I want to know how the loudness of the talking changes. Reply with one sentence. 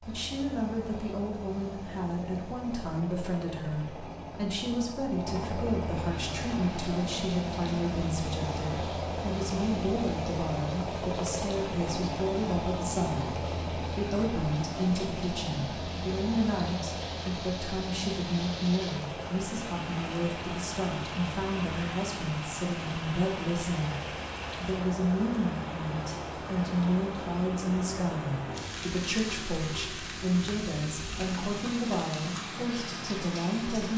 The volume of the talking stays about the same.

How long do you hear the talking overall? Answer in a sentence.
You can hear the talking for 33 seconds altogether.